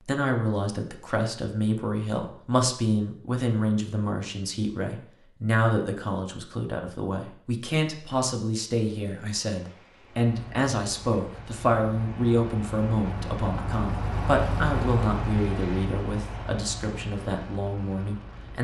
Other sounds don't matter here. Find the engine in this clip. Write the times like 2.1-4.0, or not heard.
10.2-18.5.